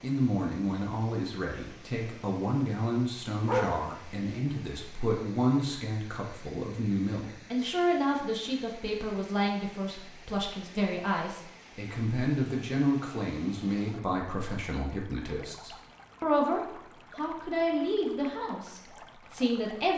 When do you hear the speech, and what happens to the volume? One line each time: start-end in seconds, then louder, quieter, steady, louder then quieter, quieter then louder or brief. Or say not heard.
0.0-19.9 steady.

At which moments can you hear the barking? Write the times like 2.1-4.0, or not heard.
3.5-4.5.